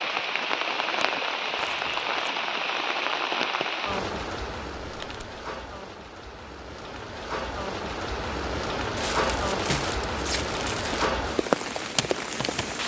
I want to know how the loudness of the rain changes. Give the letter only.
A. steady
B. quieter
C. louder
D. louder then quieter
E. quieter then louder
E.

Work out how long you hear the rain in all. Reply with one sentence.
The rain can be heard for 13 seconds in total.